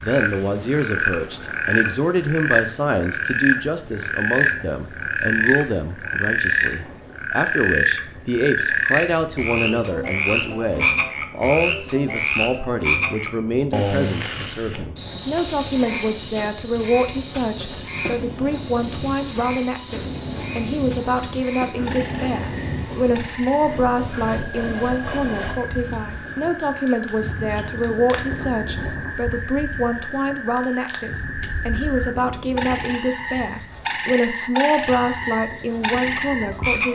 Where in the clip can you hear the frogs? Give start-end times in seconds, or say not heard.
0.0-36.9.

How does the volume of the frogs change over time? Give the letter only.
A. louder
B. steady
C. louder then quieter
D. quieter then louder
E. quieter
D.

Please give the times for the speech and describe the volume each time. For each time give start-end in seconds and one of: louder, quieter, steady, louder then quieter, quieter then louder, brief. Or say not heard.
0.0-36.9 steady.